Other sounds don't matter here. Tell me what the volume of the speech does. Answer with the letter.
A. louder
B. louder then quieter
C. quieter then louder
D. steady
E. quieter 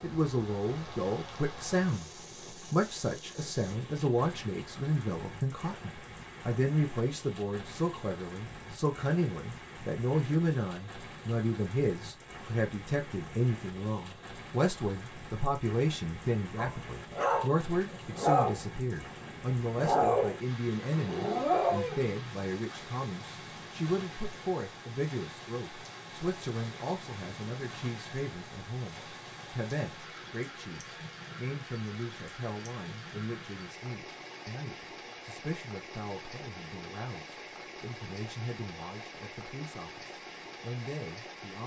E.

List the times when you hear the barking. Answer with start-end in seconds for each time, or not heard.
16.6-22.1.